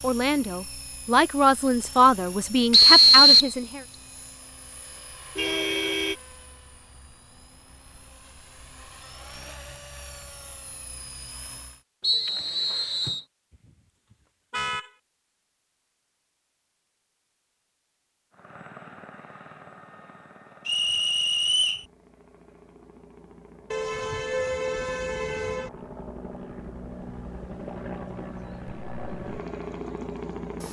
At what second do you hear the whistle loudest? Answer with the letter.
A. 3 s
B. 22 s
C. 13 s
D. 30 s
A.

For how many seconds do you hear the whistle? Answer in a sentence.
You can hear the whistle for 3 seconds altogether.